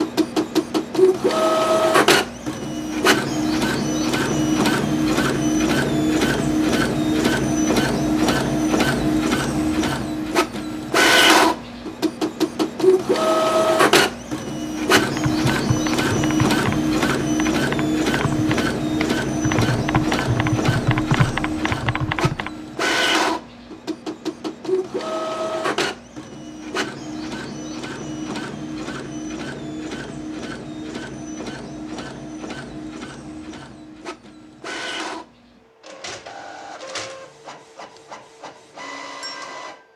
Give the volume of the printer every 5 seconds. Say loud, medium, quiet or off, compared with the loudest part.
loud, loud, loud, loud, medium, medium, quiet, quiet.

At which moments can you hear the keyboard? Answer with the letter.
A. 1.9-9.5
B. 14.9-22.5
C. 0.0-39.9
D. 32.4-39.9
B.